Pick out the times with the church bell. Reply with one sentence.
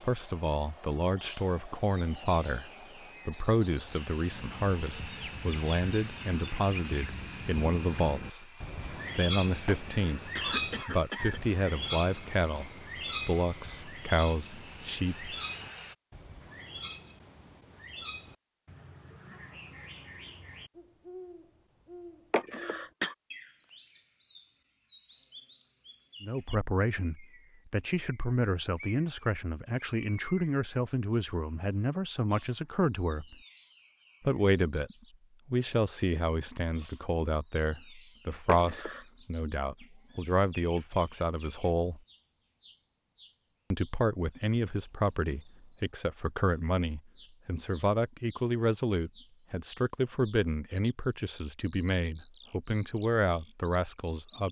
The church bell can't be heard in this clip.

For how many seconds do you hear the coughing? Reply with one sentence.
The coughing can be heard for 3 seconds in total.